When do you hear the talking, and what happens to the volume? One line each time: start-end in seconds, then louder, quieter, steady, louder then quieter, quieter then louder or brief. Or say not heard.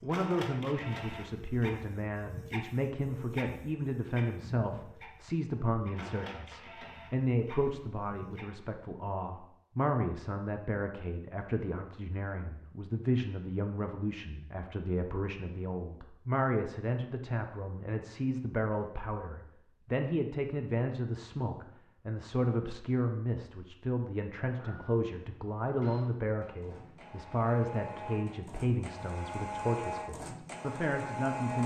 0.0-31.6 steady.